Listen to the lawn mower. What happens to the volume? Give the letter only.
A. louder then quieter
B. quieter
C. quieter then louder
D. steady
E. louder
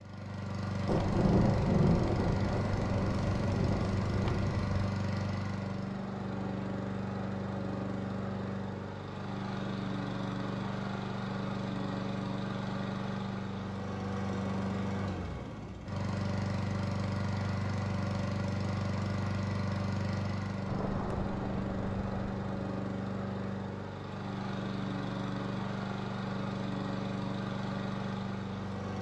D.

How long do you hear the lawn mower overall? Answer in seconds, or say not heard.
29 s.